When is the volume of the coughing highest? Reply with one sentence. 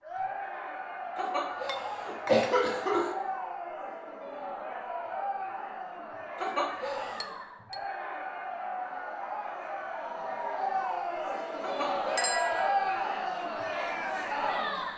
The loudest moment of the coughing is at 2 seconds.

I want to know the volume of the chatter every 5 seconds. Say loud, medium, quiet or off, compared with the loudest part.
medium, medium, loud.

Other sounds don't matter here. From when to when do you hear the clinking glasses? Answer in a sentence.
The clinking glasses can be heard from 1.6 to 2.5 s, from 7.2 to 7.8 s and from 12.2 to 12.9 s.